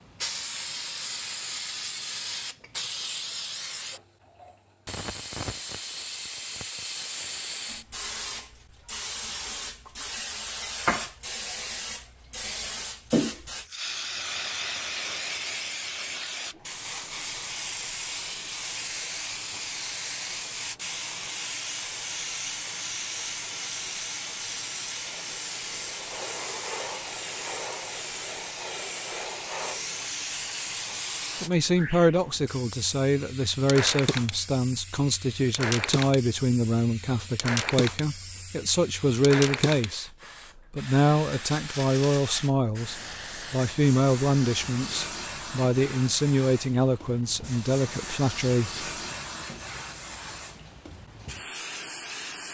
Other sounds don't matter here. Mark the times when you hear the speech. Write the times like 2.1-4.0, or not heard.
31.4-40.1, 40.8-48.9.